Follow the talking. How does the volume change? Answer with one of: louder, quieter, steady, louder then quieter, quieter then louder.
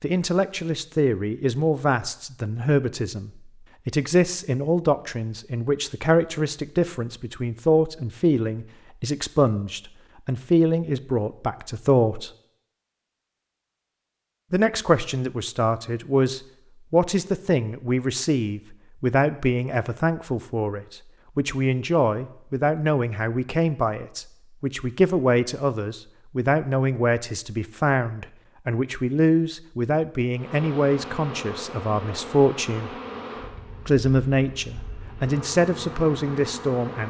steady.